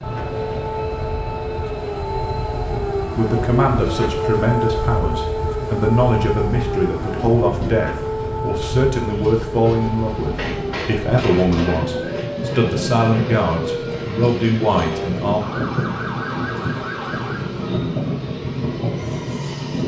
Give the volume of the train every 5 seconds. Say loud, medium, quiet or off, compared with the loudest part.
medium, medium, loud, loud.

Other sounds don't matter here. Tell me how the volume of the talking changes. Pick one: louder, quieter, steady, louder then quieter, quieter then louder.
steady.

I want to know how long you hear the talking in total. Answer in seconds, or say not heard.
12 s.